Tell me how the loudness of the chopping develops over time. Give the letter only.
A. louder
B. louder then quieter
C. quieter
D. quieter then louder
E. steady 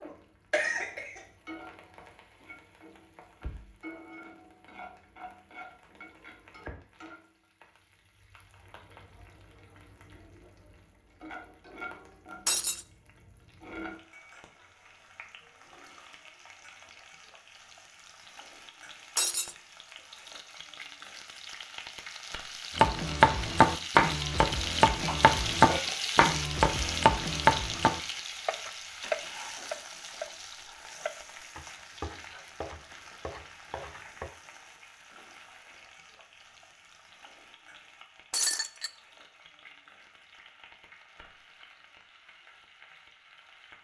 C.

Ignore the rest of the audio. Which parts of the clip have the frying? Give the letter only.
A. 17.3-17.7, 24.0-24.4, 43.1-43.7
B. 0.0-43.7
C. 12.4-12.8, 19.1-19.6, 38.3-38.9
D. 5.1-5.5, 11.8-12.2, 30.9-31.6
B.